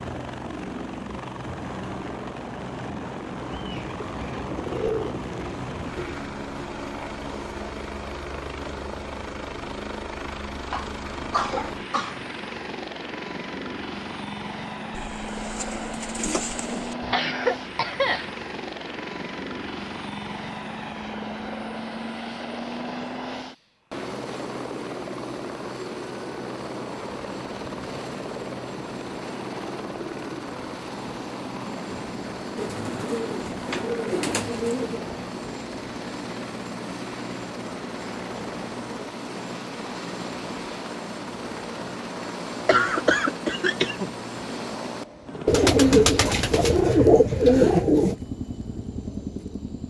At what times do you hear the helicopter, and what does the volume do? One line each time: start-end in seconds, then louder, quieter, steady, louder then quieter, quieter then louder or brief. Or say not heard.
0.0-49.8 steady.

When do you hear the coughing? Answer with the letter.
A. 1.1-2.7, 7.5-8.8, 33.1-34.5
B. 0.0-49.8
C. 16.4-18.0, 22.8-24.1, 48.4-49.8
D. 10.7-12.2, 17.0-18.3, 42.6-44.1
D.